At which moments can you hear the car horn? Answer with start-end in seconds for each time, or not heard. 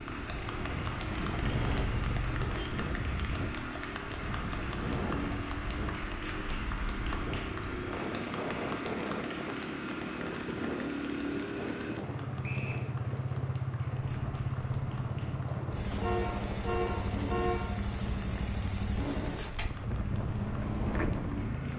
1.4-2.6, 16.0-17.8.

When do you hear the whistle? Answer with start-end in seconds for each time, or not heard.
12.4-12.8.